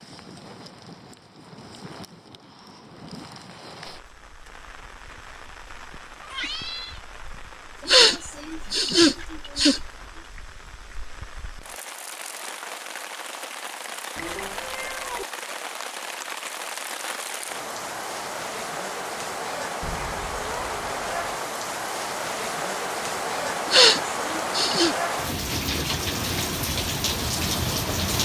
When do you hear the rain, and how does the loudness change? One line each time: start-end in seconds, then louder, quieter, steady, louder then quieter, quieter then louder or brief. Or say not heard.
0.0-28.2 louder.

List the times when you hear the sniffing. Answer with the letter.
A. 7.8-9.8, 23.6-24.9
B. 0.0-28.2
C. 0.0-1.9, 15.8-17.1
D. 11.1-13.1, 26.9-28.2
A.